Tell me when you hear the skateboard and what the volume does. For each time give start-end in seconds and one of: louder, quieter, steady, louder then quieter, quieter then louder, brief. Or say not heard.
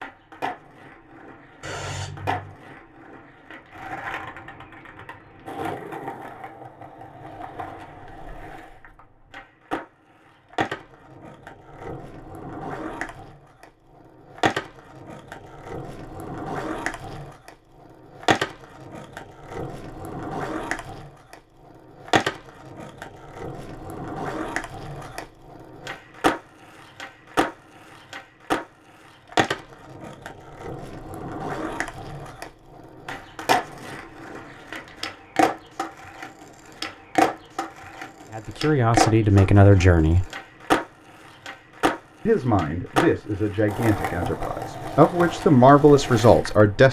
0.0-46.8 louder.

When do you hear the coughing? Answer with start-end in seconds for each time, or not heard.
1.6-2.5.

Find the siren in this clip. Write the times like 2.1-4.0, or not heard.
not heard.